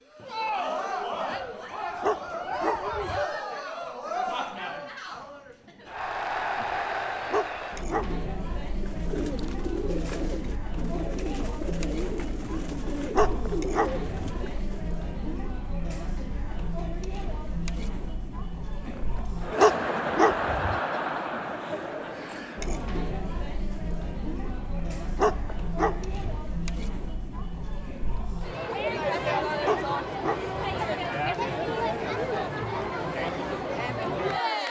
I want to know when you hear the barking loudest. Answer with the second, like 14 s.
20 s.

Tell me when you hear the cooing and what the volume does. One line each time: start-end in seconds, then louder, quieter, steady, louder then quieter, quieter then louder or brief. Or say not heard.
8.7-14.8 steady.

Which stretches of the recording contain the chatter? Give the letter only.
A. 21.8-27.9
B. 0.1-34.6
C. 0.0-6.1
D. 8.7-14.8
B.